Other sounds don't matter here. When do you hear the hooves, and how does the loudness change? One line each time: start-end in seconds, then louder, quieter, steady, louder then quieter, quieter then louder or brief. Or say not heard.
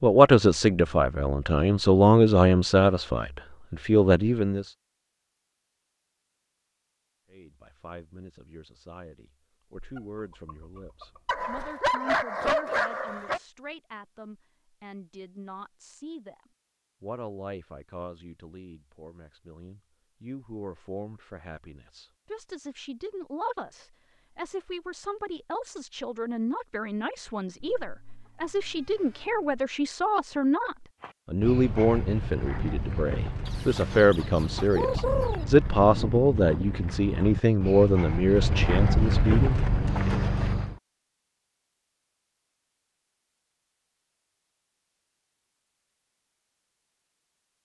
31.0-40.8 louder.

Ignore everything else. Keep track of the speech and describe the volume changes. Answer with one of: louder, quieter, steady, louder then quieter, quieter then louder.
quieter then louder.